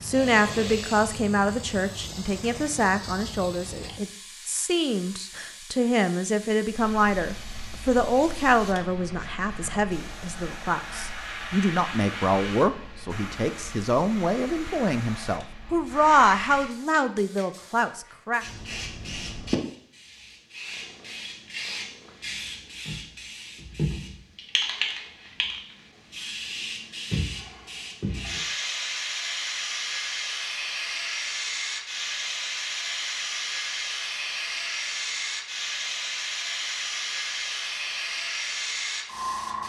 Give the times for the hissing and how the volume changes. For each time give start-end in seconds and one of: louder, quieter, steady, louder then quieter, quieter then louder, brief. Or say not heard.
0.0-39.6 louder.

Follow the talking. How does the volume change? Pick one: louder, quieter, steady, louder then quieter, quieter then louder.
steady.